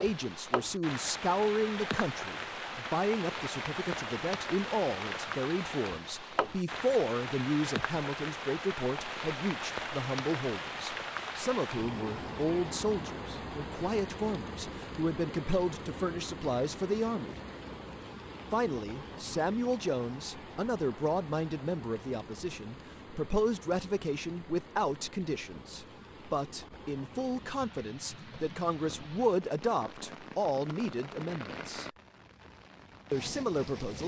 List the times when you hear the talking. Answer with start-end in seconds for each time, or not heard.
0.0-17.4, 18.5-31.9, 33.1-34.0.